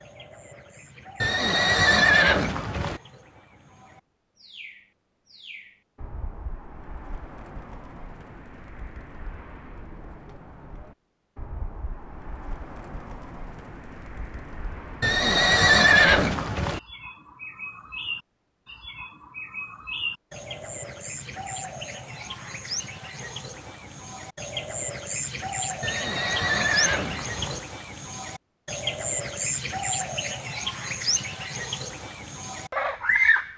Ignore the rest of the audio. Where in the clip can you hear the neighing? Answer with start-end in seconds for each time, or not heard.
1.2-3.0, 15.0-16.8, 25.8-27.6.